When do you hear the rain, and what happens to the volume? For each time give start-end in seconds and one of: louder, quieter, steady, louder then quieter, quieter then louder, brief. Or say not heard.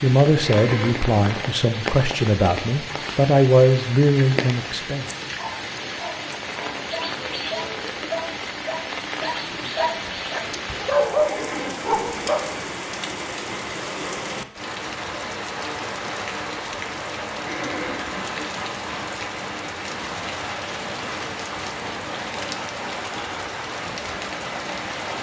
0.0-25.1 steady.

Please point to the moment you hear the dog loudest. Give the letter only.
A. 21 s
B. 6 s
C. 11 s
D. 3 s
C.